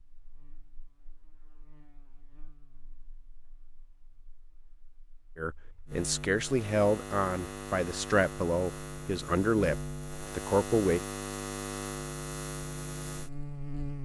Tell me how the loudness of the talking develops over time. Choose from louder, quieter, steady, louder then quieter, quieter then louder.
steady.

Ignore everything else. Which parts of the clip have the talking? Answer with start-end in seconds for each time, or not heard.
5.3-11.0.